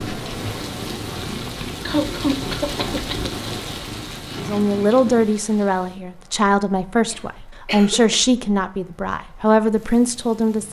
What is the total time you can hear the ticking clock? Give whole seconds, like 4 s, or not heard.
not heard.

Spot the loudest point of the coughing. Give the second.
2 s.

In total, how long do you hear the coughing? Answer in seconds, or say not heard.
3 s.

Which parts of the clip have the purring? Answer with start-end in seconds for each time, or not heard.
0.0-5.3.